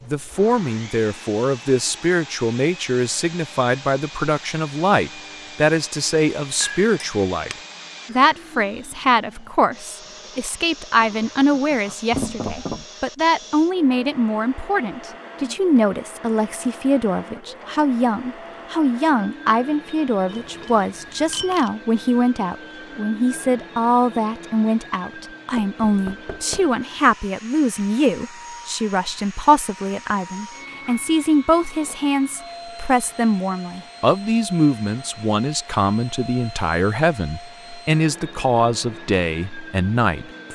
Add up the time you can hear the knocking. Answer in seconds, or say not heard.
2 s.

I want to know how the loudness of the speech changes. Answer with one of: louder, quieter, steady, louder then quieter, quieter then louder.
steady.